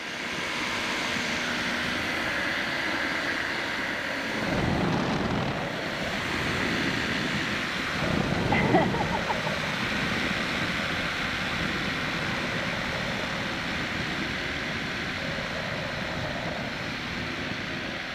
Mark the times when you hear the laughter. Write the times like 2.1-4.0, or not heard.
8.5-9.7.